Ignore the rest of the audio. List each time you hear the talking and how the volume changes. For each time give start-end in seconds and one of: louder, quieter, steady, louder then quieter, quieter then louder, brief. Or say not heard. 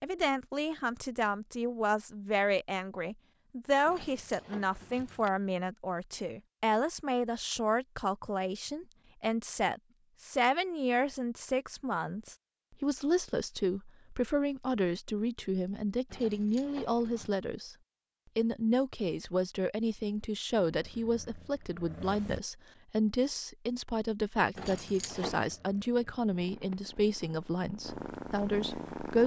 0.0-17.8 steady
18.4-29.2 steady.